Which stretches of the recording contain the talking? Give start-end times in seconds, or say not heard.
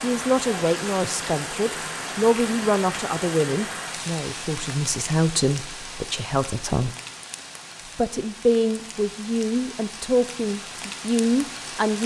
0.0-7.0, 8.0-12.0.